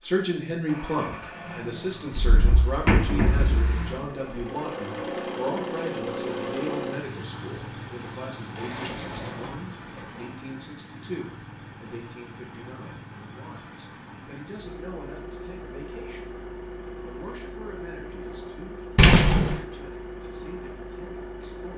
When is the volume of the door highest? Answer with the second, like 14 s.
19 s.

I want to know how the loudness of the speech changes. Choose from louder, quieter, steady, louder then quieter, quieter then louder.
quieter.